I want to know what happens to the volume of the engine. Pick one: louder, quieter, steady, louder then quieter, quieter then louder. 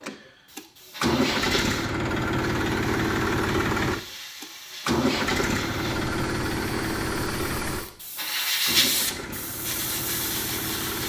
quieter.